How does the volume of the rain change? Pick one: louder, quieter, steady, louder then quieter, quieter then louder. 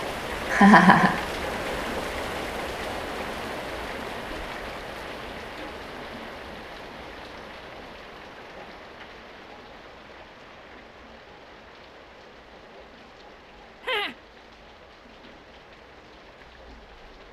quieter.